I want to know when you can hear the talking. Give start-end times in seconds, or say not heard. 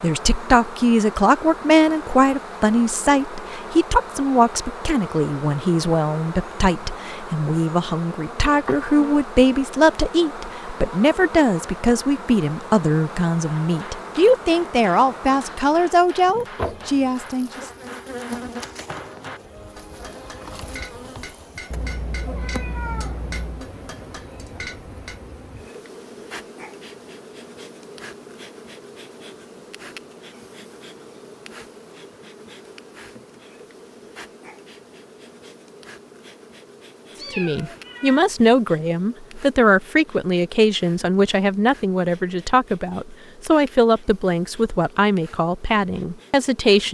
0.0-17.6, 37.4-46.8.